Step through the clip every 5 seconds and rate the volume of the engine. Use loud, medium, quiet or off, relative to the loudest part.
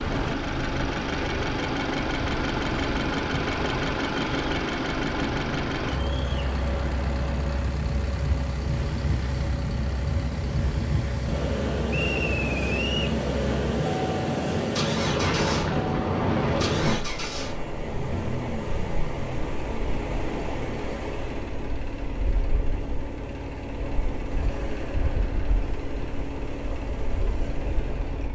loud, medium, medium, medium, medium, medium.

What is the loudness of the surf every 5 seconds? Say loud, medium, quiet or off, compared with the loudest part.
medium, medium, loud, loud, medium, medium.